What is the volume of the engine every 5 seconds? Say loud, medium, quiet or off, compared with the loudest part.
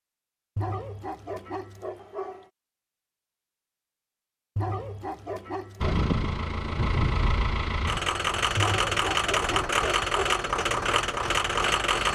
off, loud, loud.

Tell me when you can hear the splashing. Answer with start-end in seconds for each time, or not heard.
not heard.